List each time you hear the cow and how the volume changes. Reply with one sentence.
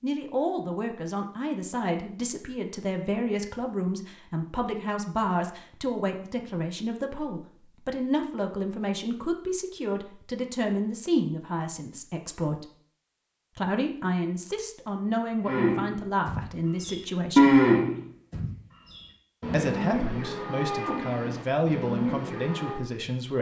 You can hear the cow from 15.4 to 22.8 s, getting louder then quieter.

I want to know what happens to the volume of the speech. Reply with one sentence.
The loudness of the speech stays about the same.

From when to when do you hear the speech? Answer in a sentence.
You can hear the speech from 0.0 to 12.7 s, from 13.6 to 17.6 s and from 19.5 to 23.3 s.